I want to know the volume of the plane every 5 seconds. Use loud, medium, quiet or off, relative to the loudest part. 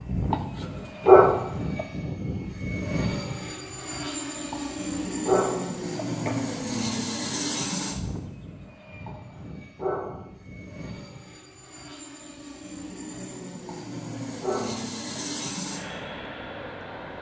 loud, loud, medium, loud.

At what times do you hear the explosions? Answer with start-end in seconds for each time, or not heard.
not heard.